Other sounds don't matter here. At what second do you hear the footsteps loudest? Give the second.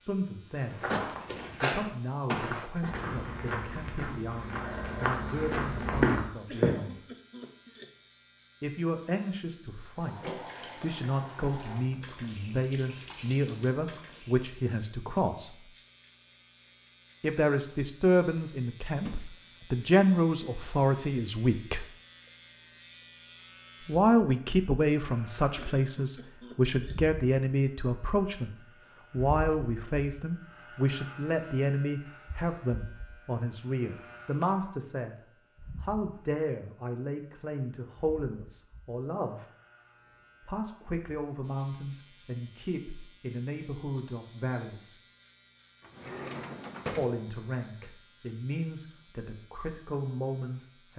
6 s.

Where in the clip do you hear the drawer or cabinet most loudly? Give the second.
47 s.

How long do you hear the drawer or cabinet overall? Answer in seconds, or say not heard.
2 s.